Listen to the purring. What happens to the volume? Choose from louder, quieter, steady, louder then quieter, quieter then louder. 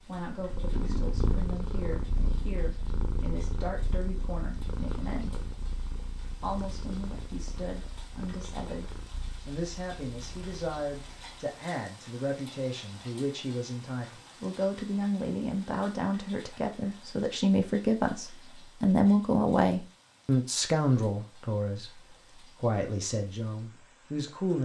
quieter.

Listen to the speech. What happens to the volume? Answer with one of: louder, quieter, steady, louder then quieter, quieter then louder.
louder.